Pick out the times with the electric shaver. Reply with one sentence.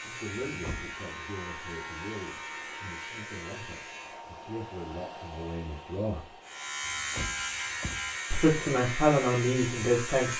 The electric shaver can be heard from 0.0 to 4.2 s and from 6.4 to 10.3 s.